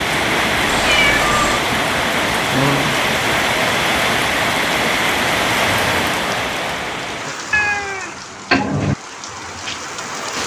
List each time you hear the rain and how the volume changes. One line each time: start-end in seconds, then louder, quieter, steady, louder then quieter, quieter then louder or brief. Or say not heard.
0.0-10.4 quieter.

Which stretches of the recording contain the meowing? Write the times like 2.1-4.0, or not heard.
0.7-1.6, 7.5-8.9.